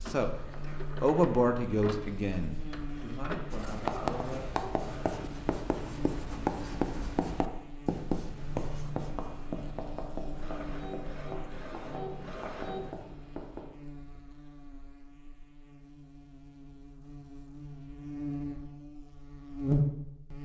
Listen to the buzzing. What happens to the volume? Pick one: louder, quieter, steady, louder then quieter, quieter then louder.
quieter then louder.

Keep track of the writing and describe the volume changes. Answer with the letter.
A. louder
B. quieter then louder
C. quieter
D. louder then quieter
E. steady
C.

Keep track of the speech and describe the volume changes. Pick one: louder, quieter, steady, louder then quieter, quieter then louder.
quieter.